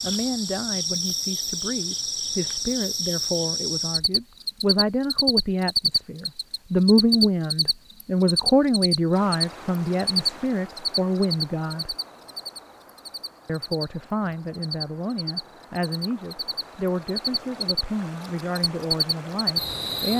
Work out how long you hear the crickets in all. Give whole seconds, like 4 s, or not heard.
20 s.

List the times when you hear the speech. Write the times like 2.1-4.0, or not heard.
0.0-11.9, 13.4-20.1.